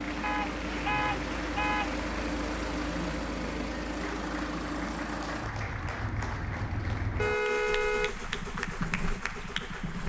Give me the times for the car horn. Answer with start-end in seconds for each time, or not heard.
0.2-1.9, 7.2-8.1.